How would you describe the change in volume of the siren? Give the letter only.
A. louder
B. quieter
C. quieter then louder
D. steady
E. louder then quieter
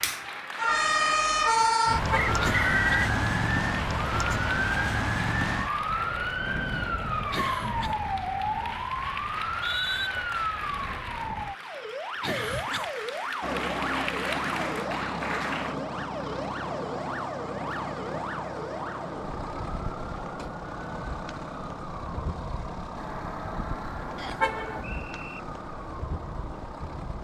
B.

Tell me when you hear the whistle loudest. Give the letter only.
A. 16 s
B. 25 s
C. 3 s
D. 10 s
C.